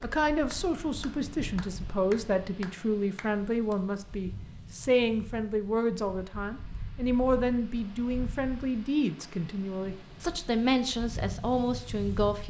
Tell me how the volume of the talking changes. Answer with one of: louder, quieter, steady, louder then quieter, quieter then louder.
steady.